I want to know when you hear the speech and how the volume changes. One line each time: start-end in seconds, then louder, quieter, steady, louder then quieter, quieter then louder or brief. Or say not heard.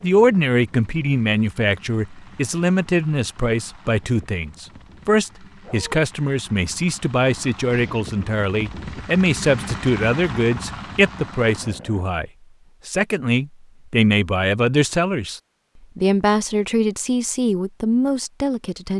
0.0-18.9 steady.